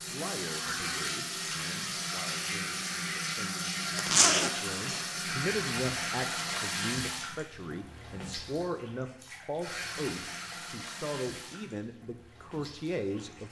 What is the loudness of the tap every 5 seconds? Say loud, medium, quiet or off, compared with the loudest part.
loud, loud, medium.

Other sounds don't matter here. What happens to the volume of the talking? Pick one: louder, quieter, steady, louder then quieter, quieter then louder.
louder.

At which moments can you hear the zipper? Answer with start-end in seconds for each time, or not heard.
4.0-5.0.